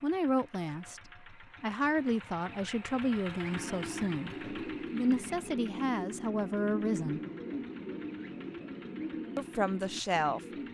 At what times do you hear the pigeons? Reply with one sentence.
The pigeons can be heard from 3.5 to 10.6 s.